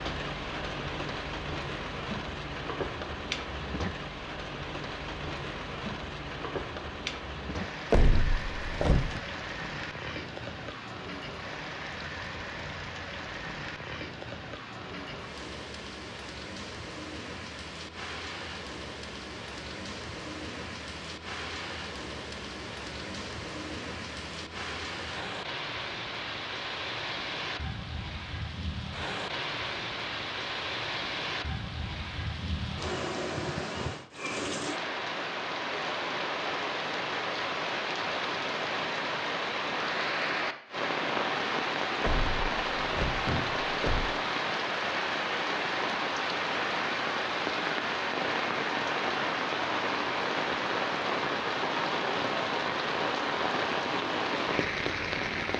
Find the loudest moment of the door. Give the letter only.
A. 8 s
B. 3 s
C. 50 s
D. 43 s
A.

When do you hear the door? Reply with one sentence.
The door can be heard from 7.9 to 9.2 s and from 42.0 to 44.1 s.